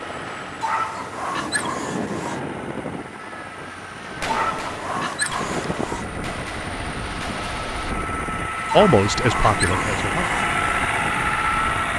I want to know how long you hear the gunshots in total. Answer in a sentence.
The gunshots can be heard for 4 seconds in total.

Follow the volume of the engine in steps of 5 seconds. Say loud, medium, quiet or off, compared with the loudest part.
quiet, medium, loud.